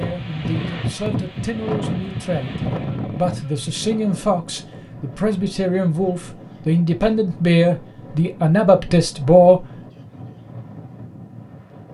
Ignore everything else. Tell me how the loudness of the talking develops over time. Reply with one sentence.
The loudness of the talking goes up.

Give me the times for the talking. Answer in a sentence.
The talking can be heard from 0.0 to 9.7 s.